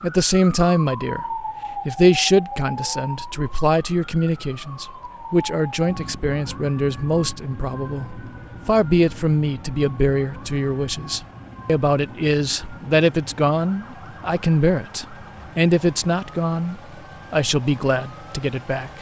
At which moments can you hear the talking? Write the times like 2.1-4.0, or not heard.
0.0-18.9.